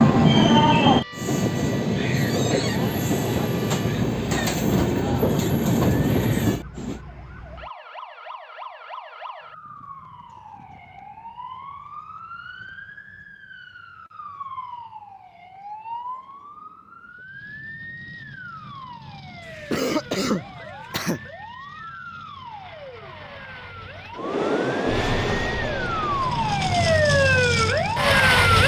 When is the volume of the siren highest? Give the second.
28 s.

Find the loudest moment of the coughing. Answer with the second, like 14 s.
20 s.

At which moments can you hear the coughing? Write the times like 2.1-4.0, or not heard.
19.4-21.2.